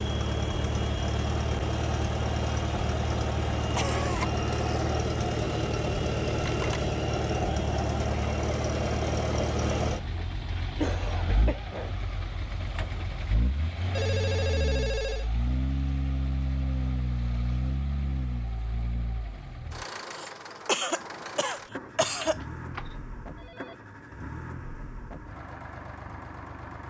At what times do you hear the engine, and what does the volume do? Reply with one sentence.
You can hear the engine from 0.0 to 26.8 s, getting quieter.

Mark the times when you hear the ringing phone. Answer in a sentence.
You can hear the ringing phone from 6.4 to 6.9 s, from 13.9 to 15.3 s and from 22.2 to 23.8 s.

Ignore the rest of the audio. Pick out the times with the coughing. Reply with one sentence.
You can hear the coughing from 3.7 to 4.8 s, from 10.8 to 12.0 s and from 20.1 to 22.4 s.